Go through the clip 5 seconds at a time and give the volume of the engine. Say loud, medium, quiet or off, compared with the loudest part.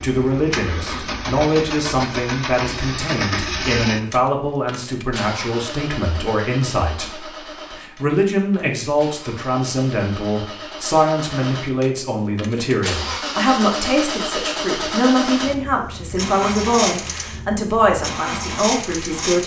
loud, medium, loud, loud.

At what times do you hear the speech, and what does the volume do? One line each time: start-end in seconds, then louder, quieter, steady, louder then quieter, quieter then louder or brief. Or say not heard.
0.0-19.4 steady.